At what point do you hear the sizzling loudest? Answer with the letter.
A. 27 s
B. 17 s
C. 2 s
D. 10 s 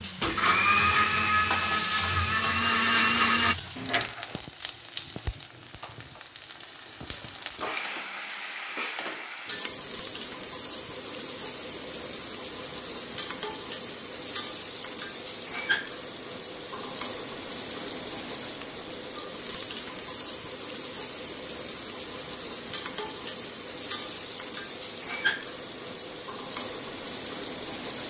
C.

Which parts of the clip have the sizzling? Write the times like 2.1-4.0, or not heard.
0.0-28.0.